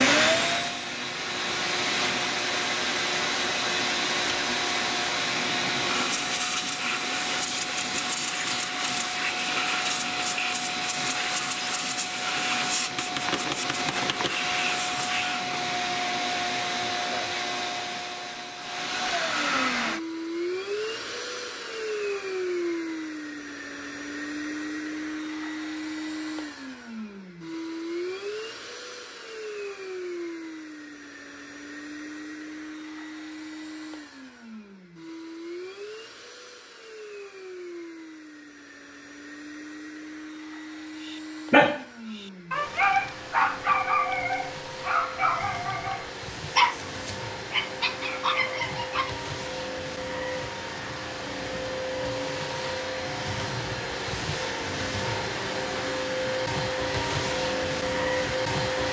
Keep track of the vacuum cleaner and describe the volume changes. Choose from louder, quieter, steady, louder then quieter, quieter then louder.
quieter then louder.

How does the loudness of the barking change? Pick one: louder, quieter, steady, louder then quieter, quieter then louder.
quieter.